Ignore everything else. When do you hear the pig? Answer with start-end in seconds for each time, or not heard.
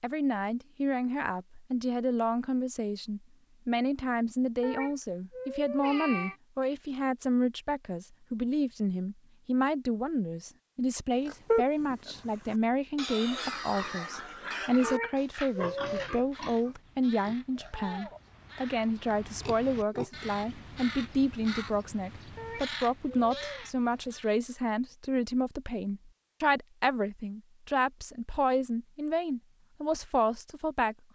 11.2-20.2.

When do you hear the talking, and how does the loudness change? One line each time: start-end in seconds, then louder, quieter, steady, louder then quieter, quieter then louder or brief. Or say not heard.
0.0-31.1 steady.